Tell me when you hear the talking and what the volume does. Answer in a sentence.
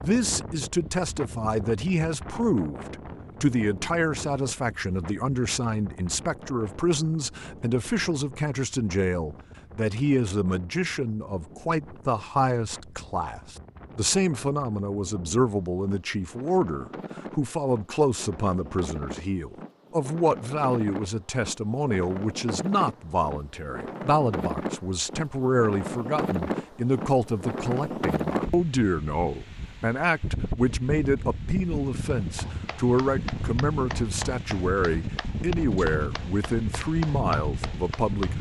You can hear the talking from 0.0 to 38.3 s, at a steady volume.